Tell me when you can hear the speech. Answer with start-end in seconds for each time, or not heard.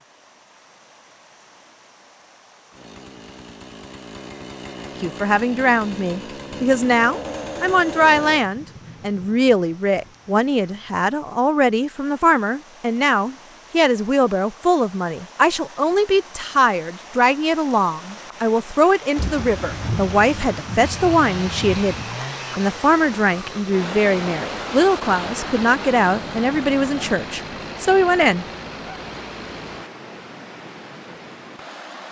5.0-28.4.